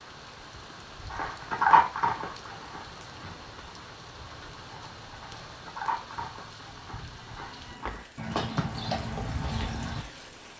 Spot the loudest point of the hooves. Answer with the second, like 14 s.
2 s.